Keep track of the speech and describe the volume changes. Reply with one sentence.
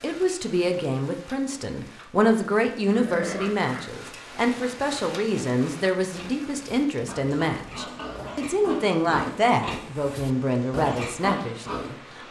The loudness of the speech stays about the same.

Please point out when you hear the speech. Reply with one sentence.
The speech can be heard from 0.0 to 12.2 s.